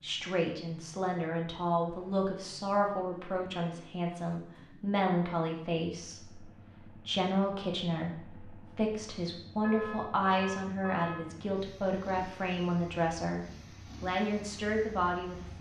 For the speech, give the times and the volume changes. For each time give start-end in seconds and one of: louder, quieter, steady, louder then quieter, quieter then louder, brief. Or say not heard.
0.0-15.5 steady.